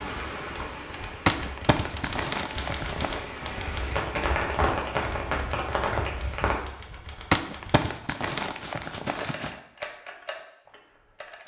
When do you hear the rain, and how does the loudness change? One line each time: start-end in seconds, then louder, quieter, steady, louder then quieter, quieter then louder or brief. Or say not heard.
0.0-6.6 louder.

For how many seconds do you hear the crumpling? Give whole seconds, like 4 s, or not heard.
4 s.